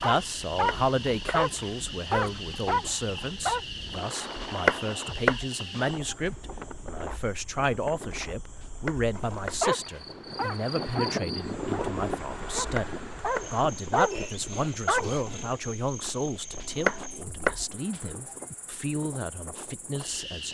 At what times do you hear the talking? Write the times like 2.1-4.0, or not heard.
0.0-20.4.